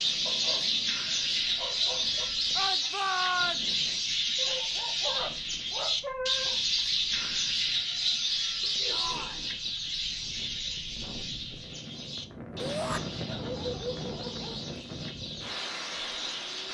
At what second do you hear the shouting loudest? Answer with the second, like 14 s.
3 s.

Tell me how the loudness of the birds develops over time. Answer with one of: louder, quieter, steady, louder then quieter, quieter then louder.
quieter.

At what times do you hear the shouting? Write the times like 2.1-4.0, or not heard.
2.5-3.6, 8.8-9.5, 12.6-13.0.